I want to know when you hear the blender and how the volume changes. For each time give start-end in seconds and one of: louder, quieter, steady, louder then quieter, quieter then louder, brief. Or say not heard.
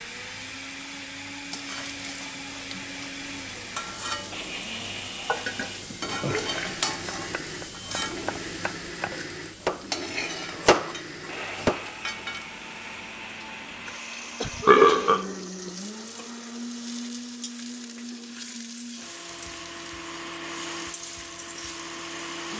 0.0-22.5 steady.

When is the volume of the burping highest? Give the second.
15 s.